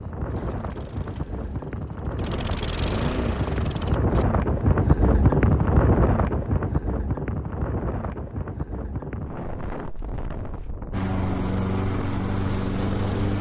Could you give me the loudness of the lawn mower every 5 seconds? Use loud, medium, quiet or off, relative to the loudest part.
medium, off, loud.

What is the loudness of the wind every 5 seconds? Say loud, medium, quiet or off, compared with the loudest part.
loud, loud, medium.